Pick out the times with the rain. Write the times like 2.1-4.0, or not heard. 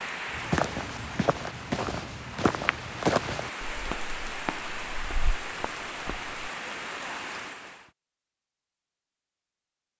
0.0-7.9.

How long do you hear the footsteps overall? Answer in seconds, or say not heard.
6 s.